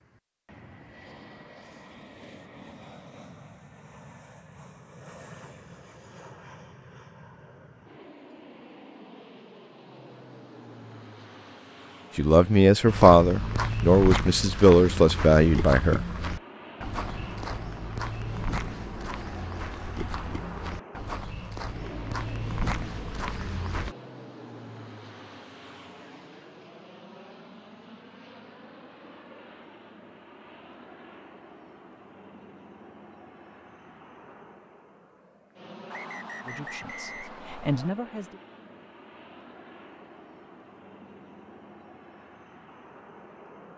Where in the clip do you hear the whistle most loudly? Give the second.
37 s.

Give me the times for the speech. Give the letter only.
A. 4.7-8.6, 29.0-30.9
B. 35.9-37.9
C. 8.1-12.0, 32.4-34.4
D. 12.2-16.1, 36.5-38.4
D.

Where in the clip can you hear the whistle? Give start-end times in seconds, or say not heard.
35.9-37.9.